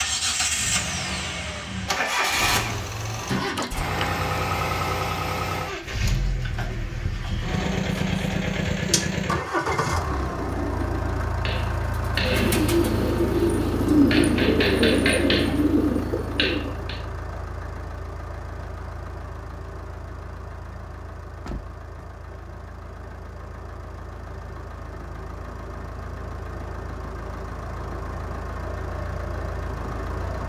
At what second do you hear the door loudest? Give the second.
4 s.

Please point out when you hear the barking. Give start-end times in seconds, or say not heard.
not heard.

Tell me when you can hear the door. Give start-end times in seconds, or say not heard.
3.5-4.2, 21.3-22.1.